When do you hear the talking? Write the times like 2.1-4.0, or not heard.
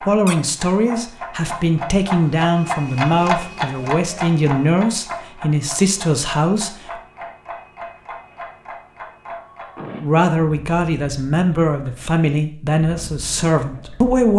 0.1-6.7, 10.0-14.3.